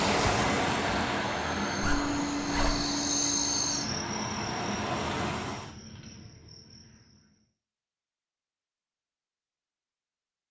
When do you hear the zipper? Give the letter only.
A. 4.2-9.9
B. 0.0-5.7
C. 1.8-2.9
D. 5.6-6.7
C.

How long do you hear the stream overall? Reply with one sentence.
You can hear the stream for 6 seconds altogether.